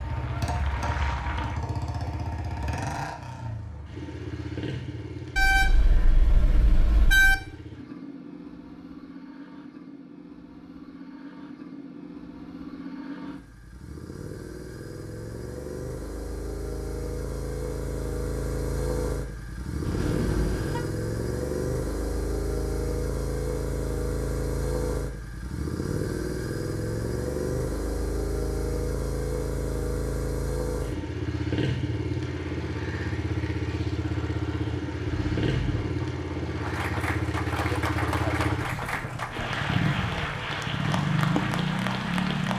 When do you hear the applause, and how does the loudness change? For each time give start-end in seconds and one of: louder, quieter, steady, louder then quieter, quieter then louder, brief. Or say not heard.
0.0-1.6 brief
32.2-42.5 louder.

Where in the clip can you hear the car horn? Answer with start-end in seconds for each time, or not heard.
5.3-7.3, 19.8-20.9, 35.0-36.0.